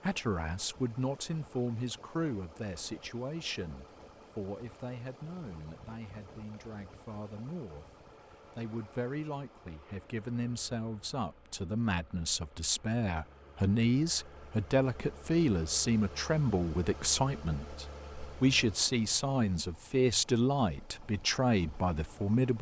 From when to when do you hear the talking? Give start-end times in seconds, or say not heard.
0.0-22.5.